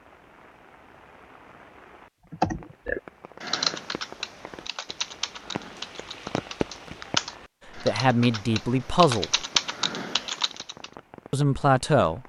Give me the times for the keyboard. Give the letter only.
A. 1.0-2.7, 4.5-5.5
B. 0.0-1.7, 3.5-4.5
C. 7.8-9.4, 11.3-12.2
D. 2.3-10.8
D.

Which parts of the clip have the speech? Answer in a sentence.
You can hear the speech from 7.8 to 9.4 s and from 11.3 to 12.2 s.